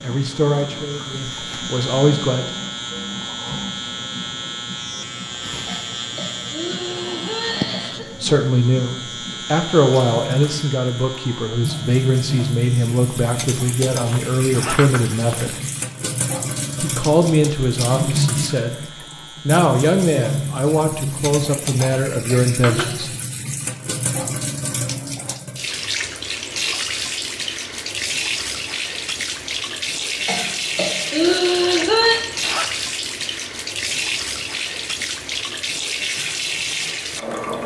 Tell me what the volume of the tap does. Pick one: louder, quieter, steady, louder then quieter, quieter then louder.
louder.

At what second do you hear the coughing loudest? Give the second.
32 s.